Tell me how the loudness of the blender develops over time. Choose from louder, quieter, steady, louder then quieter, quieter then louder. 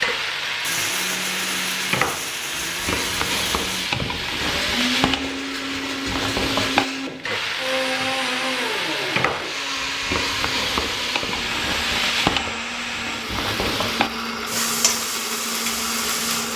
steady.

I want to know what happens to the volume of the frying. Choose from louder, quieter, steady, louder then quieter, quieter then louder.
steady.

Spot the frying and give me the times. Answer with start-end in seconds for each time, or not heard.
0.0-16.5.